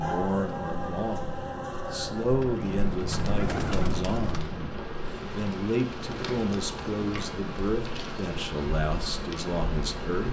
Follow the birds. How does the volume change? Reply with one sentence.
The loudness of the birds goes up, then down.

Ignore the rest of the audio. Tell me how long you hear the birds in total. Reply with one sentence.
The birds can be heard for 10 seconds in total.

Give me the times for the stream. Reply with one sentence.
The stream can't be heard in this clip.